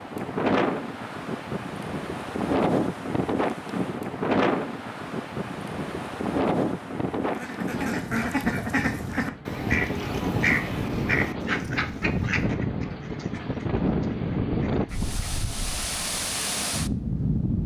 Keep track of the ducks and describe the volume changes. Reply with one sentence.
The volume of the ducks goes down.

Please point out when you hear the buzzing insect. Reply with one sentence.
The buzzing insect can't be heard in this clip.